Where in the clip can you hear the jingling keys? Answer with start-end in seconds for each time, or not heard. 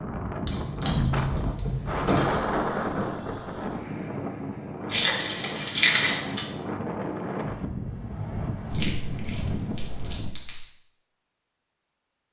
0.5-2.5, 4.9-6.5, 8.7-10.7.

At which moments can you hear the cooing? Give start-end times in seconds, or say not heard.
not heard.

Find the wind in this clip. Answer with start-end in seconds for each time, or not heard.
0.0-10.4.